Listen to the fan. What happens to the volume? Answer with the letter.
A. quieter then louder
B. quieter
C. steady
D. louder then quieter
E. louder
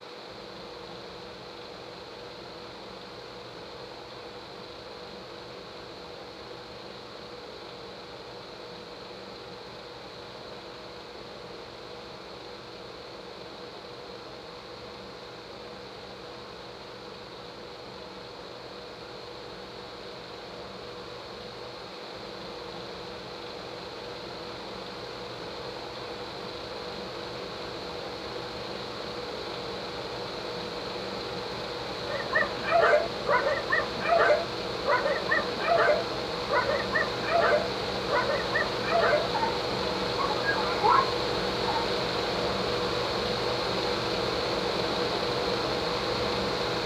E.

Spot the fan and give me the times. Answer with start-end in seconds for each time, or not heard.
0.0-46.8.